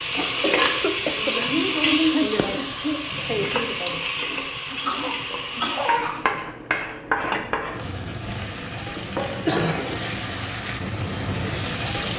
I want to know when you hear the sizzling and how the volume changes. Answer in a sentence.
You can hear the sizzling from 0.0 to 12.1 s, getting quieter.